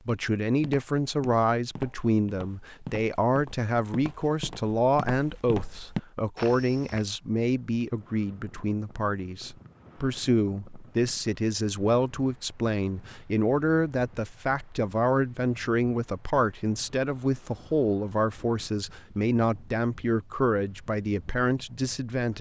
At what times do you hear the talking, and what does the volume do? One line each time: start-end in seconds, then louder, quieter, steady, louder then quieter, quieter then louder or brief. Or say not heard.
0.1-22.3 steady.